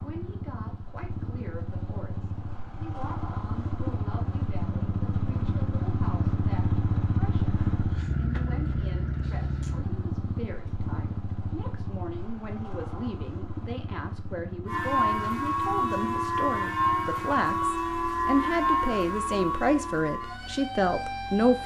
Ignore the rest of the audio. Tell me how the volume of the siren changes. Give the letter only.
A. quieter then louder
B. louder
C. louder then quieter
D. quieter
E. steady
D.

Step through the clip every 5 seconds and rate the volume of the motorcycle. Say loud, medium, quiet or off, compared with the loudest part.
medium, loud, medium, quiet, quiet.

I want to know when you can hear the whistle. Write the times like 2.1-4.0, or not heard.
not heard.